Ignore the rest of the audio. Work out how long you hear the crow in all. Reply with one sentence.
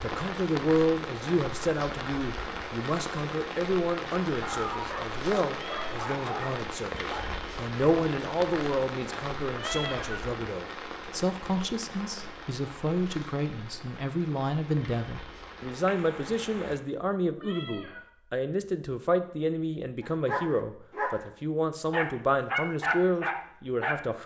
The crow can't be heard in this clip.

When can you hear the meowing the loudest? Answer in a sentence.
The loudest moment of the meowing is at 10 seconds.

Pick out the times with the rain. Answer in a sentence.
You can hear the rain from 0.0 to 16.8 s.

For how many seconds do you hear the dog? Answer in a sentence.
The dog can be heard for 6 seconds in total.